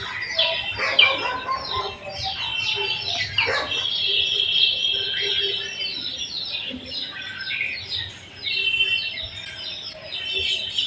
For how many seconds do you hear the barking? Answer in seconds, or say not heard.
4 s.